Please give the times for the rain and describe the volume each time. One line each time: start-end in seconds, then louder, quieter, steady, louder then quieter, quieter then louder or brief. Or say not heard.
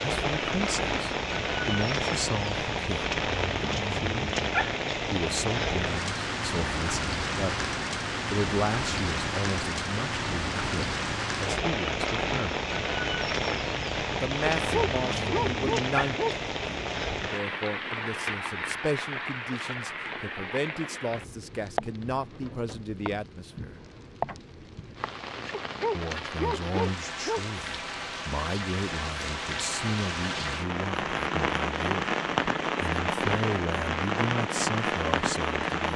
0.0-35.9 quieter then louder.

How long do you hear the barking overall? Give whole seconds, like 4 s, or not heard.
4 s.